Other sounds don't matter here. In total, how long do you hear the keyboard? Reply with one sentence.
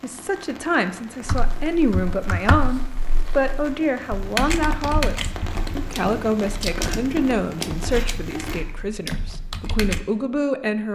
You can hear the keyboard for 9 seconds altogether.